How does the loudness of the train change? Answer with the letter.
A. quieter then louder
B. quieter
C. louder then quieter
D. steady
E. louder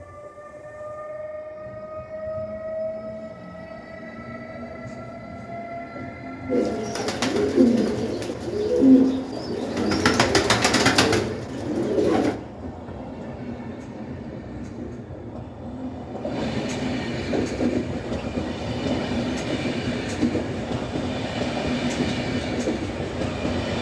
E.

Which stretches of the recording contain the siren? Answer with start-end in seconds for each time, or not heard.
not heard.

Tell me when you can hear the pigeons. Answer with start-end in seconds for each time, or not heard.
6.5-12.3.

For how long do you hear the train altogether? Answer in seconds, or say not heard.
24 s.